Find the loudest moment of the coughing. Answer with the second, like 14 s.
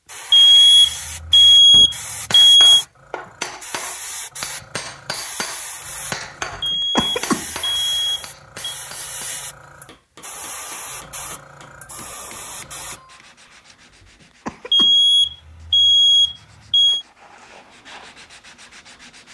7 s.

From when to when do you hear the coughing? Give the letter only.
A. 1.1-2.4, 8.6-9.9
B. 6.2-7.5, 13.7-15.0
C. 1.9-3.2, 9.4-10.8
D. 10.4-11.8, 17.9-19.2
B.